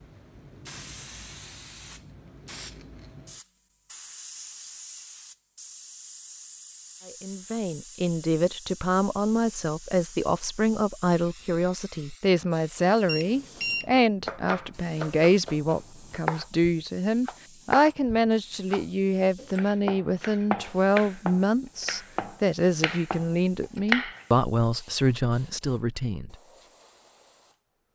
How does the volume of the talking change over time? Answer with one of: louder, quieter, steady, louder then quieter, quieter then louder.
steady.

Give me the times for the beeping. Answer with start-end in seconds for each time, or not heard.
13.1-13.8.